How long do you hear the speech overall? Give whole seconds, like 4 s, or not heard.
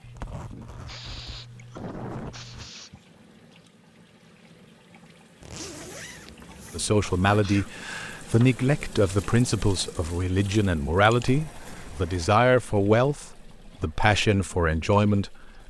9 s.